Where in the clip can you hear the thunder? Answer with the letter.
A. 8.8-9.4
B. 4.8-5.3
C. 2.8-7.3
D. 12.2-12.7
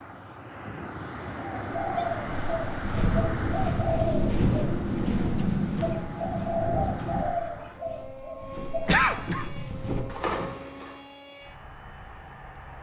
C.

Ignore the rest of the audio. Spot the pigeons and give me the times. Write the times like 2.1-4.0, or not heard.
1.4-9.1.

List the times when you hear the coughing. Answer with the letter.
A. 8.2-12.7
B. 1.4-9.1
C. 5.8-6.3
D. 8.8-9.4
D.